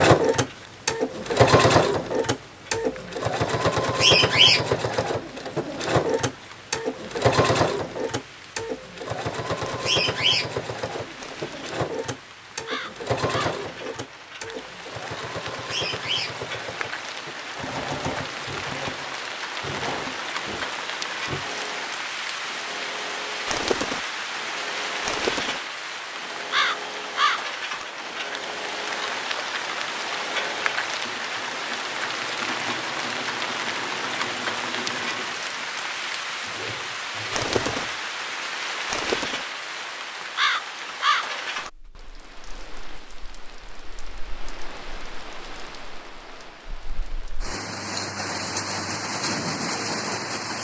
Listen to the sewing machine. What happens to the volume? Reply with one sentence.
The volume of the sewing machine goes down.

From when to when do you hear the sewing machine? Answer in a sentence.
The sewing machine can be heard from 0.0 to 38.0 s.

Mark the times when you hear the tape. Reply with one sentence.
You can't hear the tape here.